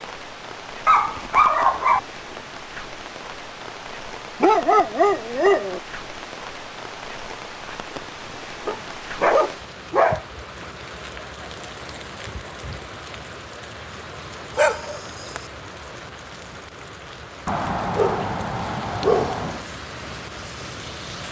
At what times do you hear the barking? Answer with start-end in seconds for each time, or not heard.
0.8-2.0, 4.4-5.8, 8.7-10.2, 14.6-15.4, 17.4-19.6.